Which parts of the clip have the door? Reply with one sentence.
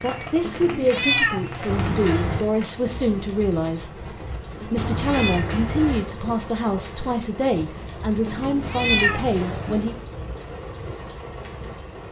The door can be heard from 1.6 to 2.5 s, from 4.8 to 6.0 s and from 8.6 to 9.9 s.